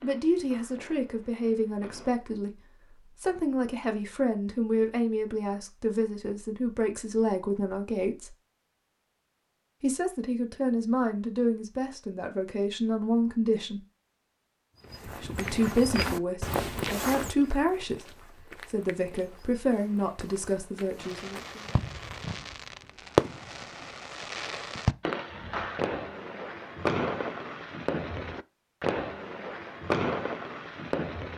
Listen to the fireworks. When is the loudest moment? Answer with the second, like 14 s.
23 s.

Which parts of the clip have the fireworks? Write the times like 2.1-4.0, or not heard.
0.0-2.1, 21.0-31.3.